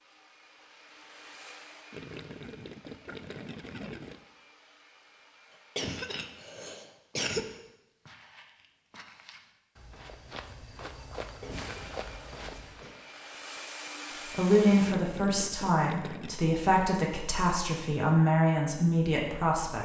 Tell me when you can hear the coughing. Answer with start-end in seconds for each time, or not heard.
5.8-7.5, 11.2-12.9.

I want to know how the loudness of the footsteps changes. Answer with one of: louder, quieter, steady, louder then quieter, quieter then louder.
louder.